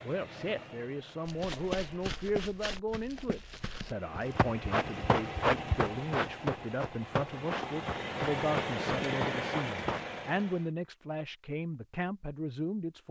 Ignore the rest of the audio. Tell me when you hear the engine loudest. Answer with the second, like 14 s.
9 s.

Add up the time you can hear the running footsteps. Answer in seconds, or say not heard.
9 s.